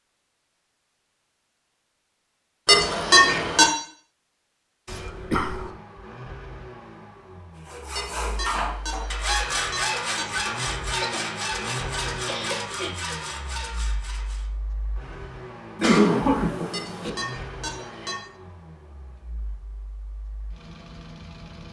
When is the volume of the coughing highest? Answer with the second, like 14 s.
16 s.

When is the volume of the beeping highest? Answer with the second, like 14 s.
3 s.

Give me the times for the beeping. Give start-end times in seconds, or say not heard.
2.6-3.7, 8.0-10.6, 16.7-18.2.